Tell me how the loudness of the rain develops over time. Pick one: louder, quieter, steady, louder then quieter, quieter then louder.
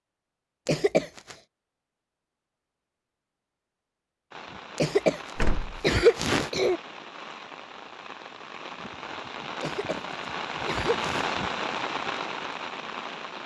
louder.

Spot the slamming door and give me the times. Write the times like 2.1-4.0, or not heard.
5.3-5.8.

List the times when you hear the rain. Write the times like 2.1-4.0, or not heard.
4.3-13.4.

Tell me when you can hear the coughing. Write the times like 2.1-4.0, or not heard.
0.7-1.4, 4.8-6.8, 9.6-11.3.